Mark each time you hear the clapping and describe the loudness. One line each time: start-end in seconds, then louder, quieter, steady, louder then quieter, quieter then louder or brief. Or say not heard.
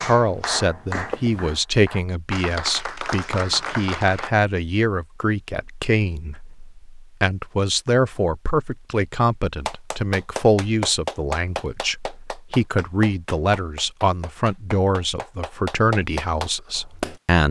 0.0-4.3 quieter then louder
9.7-17.2 quieter then louder.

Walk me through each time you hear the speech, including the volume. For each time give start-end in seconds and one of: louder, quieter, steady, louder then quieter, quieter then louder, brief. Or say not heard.
0.0-17.4 steady.